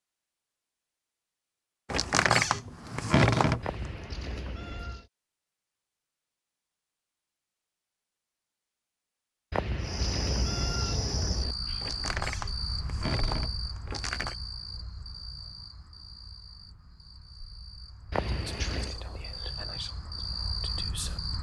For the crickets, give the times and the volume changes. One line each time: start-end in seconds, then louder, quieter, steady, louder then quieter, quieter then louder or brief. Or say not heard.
9.8-21.3 quieter then louder.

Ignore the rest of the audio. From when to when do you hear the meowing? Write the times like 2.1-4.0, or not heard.
3.6-5.0, 9.5-11.6, 18.1-18.9.